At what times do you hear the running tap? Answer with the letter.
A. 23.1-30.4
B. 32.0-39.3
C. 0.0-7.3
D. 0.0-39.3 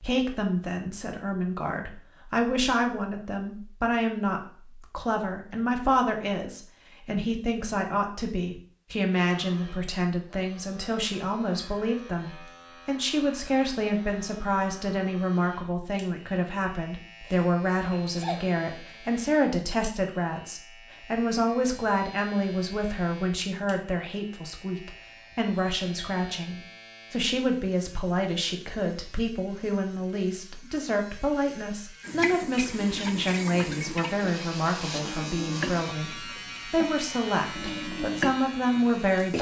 B.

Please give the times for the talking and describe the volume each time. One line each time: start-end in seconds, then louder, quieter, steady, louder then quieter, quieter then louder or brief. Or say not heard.
0.0-39.3 steady.